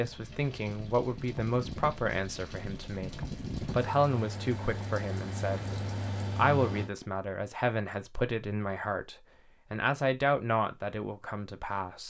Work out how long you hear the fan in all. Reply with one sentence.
You can hear the fan for 7 seconds altogether.